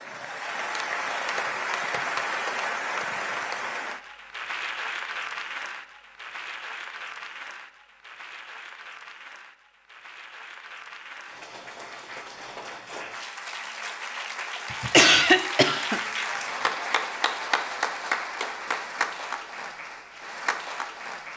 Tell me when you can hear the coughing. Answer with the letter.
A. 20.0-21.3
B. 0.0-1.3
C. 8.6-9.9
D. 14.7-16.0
D.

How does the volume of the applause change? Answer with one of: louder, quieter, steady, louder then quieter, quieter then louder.
quieter then louder.